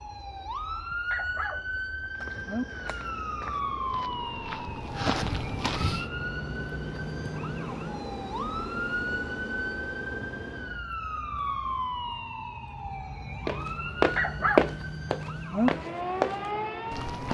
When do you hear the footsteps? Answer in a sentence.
You can hear the footsteps from 2.1 to 6.0 s and from 13.4 to 17.2 s.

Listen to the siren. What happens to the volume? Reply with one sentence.
The volume of the siren stays about the same.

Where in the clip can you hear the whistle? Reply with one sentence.
You can't hear the whistle here.